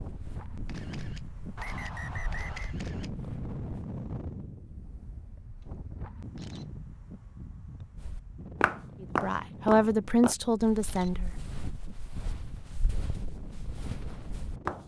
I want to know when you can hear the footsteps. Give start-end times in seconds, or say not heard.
0.0-3.9, 8.0-14.8.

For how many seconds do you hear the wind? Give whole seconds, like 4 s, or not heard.
15 s.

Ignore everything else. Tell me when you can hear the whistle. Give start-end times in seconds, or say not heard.
1.6-2.8.